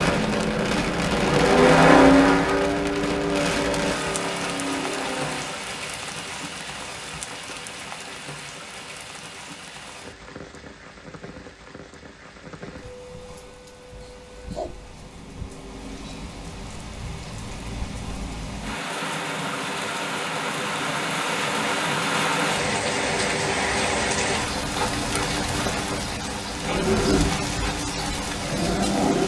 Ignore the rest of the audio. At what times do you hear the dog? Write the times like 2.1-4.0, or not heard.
not heard.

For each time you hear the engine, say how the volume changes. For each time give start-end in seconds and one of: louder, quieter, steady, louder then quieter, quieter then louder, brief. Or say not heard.
0.1-5.7 louder then quieter.